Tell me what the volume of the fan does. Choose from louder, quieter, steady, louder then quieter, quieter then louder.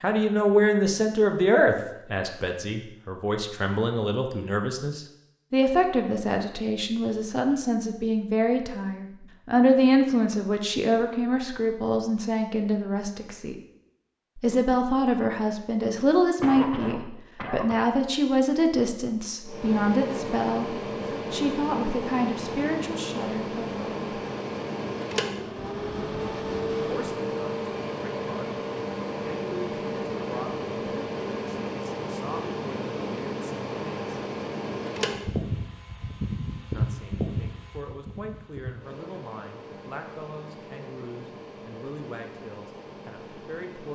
quieter.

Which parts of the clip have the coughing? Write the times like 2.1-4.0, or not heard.
16.4-17.9.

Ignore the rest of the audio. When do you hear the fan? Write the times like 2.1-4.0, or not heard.
19.4-43.8.